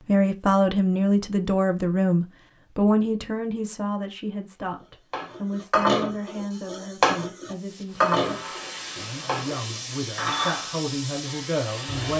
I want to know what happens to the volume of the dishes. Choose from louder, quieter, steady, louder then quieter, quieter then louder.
quieter.